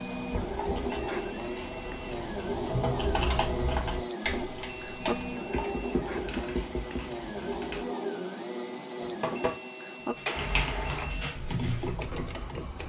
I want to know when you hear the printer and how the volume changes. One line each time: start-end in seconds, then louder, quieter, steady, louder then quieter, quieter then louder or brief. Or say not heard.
0.0-12.8 steady.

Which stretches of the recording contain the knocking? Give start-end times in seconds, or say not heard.
0.3-0.9, 5.5-7.0, 9.0-9.6.